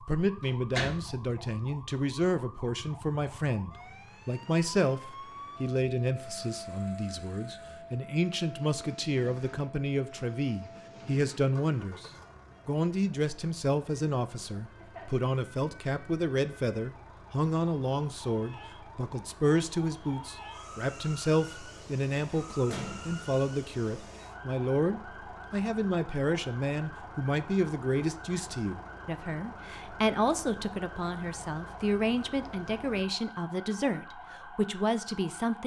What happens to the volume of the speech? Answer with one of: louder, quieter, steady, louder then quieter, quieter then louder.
steady.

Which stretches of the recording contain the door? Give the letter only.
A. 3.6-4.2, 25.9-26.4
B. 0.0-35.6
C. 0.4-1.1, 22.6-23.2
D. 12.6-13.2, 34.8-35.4
C.